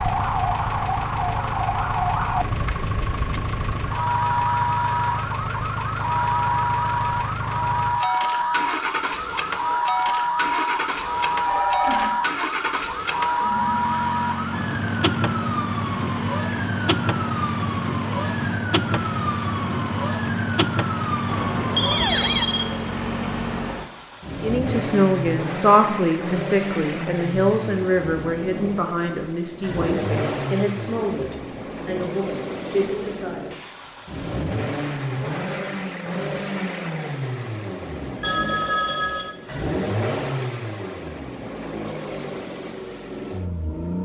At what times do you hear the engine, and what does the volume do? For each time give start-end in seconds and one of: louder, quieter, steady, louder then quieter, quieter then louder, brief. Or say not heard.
0.0-44.0 steady.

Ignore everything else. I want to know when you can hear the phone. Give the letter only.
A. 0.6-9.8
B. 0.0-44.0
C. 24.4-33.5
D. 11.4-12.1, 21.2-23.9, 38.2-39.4
D.